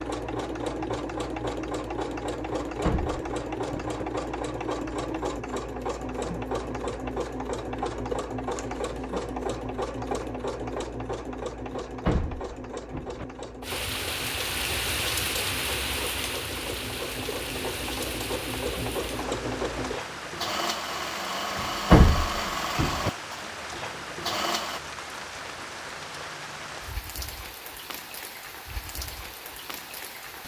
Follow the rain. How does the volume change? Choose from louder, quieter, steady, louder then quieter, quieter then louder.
quieter.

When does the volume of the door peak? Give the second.
22 s.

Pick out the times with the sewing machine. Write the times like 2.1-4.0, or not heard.
0.0-24.8.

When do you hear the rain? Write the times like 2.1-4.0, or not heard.
13.6-30.4.